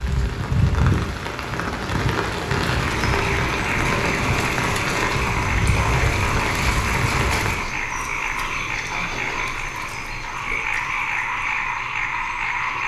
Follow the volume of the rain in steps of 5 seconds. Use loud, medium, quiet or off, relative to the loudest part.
loud, loud, off.